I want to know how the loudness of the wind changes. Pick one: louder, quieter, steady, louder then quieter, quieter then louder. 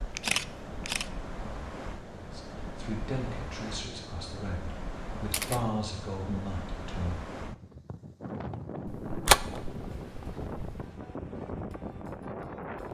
steady.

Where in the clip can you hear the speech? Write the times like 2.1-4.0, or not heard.
2.1-7.2.